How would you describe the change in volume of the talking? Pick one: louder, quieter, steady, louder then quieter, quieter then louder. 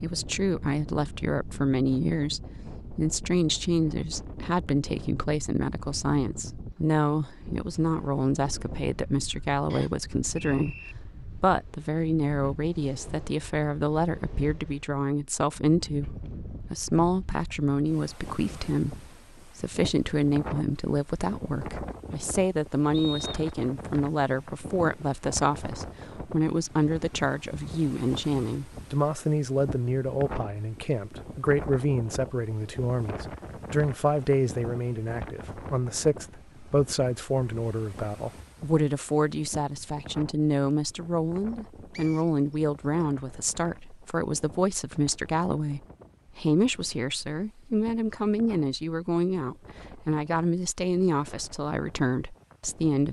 steady.